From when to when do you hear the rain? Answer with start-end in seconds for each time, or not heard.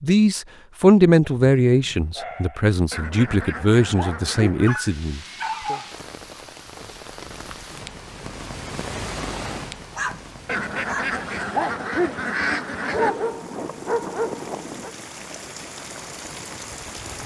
4.7-17.2.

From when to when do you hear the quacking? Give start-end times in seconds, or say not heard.
2.9-4.8, 10.4-13.2.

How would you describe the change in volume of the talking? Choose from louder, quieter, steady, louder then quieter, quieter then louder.
quieter.